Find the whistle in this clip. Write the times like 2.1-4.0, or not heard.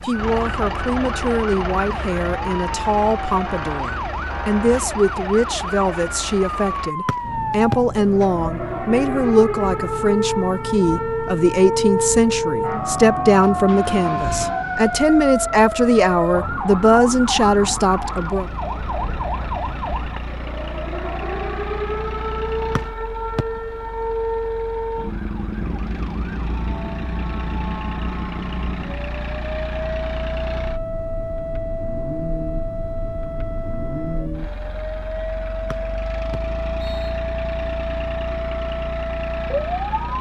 7.0-7.8, 22.8-23.4, 35.7-37.2.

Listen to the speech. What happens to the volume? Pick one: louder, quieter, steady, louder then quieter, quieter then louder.
louder.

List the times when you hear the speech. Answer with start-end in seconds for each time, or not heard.
0.0-18.4.